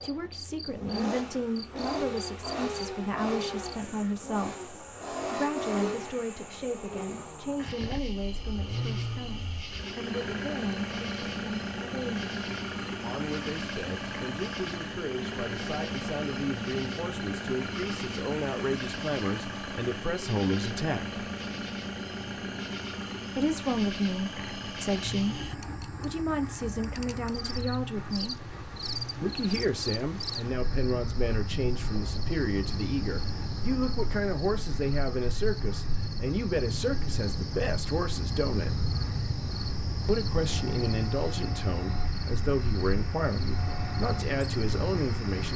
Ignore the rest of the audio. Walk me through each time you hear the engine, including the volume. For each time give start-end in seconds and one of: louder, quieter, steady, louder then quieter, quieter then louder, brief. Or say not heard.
0.0-45.5 quieter.